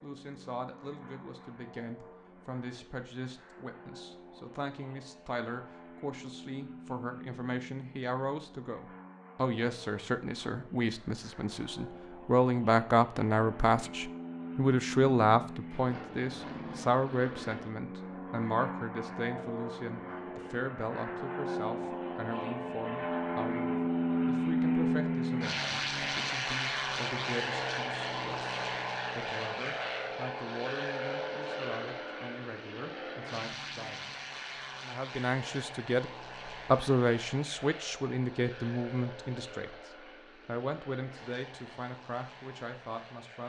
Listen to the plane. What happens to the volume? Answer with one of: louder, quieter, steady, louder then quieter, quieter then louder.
louder then quieter.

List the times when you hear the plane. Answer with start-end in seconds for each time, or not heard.
0.0-43.4.